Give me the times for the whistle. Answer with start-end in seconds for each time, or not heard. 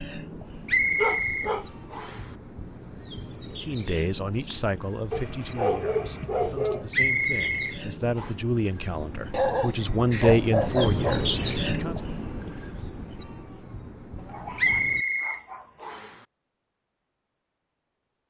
0.7-2.2, 6.9-8.3, 14.6-16.1.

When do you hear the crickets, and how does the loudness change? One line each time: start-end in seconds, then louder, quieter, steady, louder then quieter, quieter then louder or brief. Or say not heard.
0.0-15.1 louder then quieter.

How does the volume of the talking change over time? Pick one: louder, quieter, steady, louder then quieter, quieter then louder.
quieter then louder.